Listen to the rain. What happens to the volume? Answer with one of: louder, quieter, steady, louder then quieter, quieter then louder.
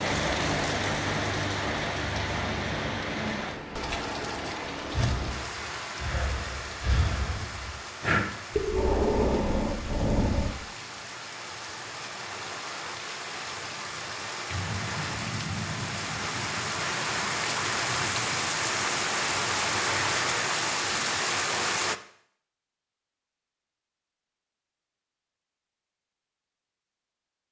quieter then louder.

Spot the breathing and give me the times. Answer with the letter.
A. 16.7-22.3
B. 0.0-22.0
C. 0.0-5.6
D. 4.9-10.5
D.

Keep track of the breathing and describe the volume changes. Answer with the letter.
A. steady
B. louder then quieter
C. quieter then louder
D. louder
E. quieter
D.